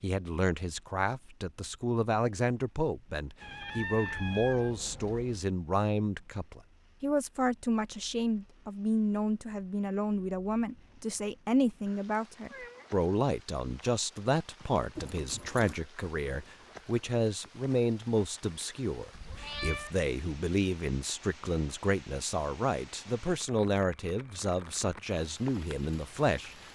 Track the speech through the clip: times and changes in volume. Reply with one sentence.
You can hear the speech from 0.0 to 26.7 s, at a steady volume.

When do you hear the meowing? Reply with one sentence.
The meowing can be heard from 3.4 to 5.5 s, from 12.4 to 12.9 s and from 19.1 to 19.9 s.